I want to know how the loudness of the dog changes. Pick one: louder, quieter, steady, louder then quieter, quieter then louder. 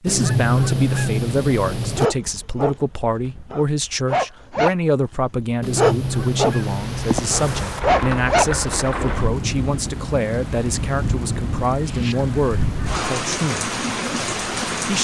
louder.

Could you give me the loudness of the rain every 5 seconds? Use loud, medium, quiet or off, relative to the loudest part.
off, loud, loud.